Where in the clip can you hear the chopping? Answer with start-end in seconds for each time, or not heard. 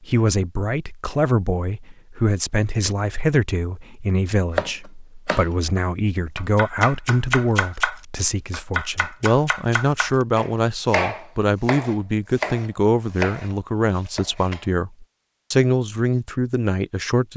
4.5-14.7.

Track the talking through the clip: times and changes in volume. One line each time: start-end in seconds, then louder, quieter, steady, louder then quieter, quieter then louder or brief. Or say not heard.
0.0-17.3 steady.